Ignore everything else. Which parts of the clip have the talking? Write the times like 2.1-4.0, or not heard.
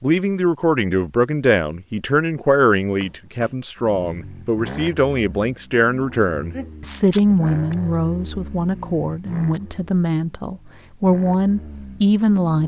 0.0-12.6.